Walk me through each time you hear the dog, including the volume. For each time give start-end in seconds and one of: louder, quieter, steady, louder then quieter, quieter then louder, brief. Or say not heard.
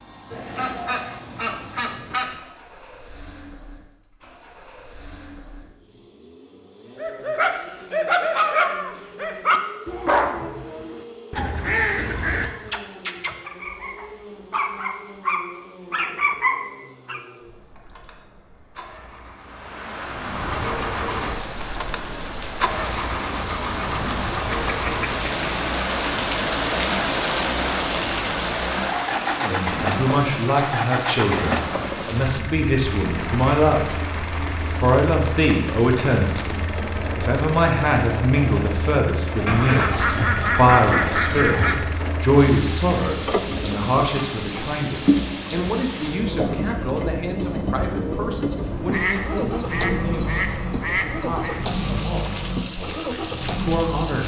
7.0-17.2 quieter then louder.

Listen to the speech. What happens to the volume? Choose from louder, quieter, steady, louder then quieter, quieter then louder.
quieter.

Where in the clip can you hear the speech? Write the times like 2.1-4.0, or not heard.
29.4-34.0, 34.8-54.2.